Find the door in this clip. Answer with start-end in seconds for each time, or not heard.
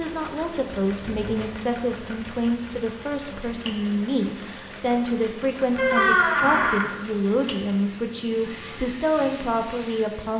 0.9-1.6, 5.8-6.8.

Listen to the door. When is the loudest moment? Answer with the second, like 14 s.
6 s.